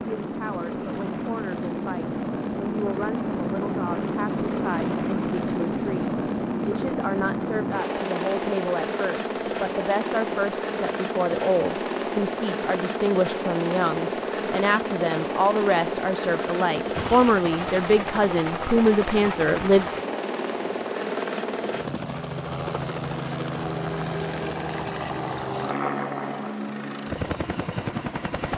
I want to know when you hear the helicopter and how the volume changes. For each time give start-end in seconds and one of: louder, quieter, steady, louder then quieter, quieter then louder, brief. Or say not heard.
0.0-28.5 steady.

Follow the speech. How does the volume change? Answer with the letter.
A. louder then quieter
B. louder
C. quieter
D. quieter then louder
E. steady
B.